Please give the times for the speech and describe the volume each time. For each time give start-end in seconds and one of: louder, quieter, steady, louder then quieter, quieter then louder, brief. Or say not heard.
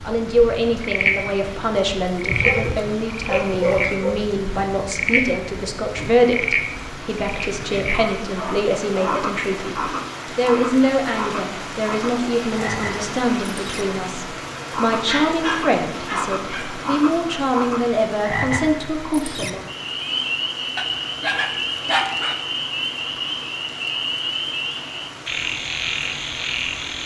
0.0-19.6 steady.